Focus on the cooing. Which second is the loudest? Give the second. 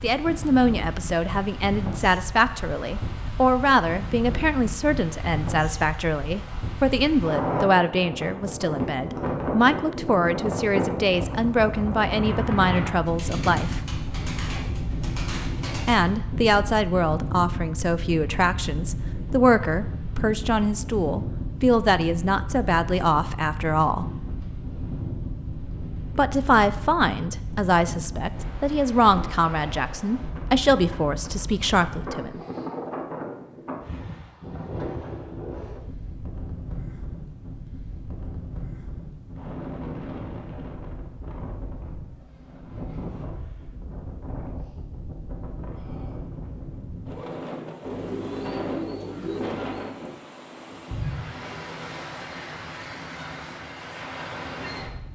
49 s.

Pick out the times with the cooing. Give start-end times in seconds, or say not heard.
13.1-16.0, 47.8-50.0.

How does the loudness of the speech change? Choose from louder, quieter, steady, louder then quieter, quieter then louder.
steady.